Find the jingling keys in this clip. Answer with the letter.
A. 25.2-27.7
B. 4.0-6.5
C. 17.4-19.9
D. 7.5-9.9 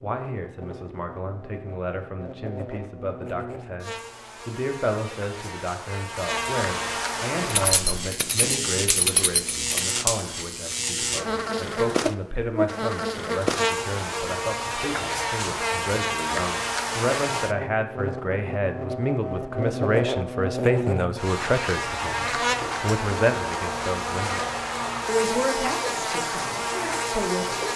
D.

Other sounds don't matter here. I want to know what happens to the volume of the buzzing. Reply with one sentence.
The volume of the buzzing goes up.